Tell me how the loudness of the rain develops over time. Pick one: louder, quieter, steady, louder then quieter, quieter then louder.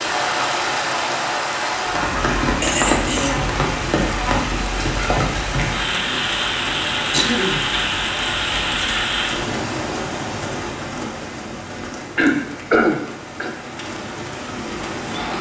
quieter.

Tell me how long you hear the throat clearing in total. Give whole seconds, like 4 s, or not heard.
3 s.